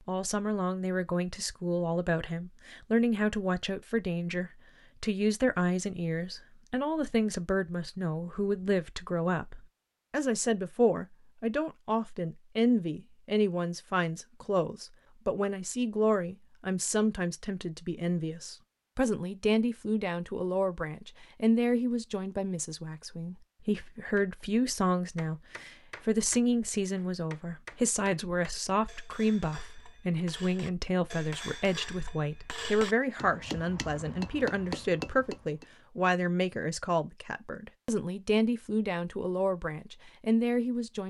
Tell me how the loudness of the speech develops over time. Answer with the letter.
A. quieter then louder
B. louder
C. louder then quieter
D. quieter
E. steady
E.